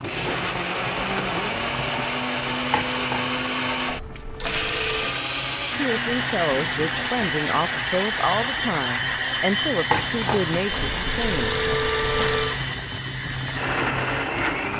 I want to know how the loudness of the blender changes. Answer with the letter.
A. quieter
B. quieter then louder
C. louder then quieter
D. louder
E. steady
E.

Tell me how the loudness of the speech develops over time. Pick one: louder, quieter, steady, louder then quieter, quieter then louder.
steady.